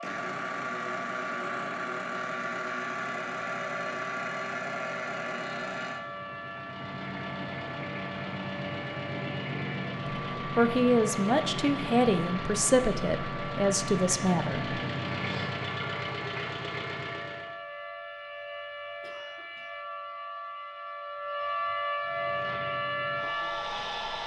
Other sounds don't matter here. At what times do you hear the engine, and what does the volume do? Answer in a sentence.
The engine can be heard from 0.0 to 17.6 s, at a steady volume; and briefly from 22.0 to 24.2 s.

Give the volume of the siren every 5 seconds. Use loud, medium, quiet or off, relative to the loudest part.
medium, medium, medium, medium, loud.